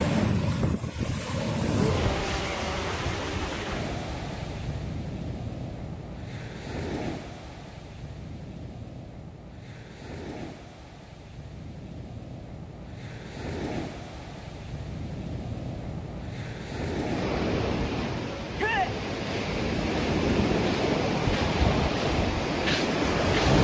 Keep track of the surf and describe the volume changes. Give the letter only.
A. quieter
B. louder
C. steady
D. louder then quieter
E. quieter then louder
E.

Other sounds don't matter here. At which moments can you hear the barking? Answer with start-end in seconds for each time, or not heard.
not heard.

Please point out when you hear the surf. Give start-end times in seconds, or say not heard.
0.0-23.5.